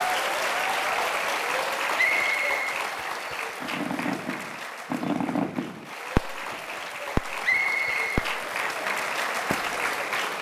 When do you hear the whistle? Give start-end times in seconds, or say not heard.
1.9-2.6, 7.4-8.2.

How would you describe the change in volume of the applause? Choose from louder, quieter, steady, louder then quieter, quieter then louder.
quieter then louder.